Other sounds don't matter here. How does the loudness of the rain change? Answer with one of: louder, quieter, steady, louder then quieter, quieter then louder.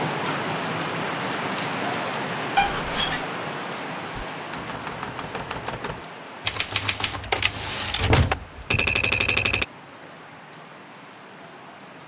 quieter.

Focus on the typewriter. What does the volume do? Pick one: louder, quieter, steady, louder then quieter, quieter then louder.
louder.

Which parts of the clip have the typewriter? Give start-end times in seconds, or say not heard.
4.1-9.7.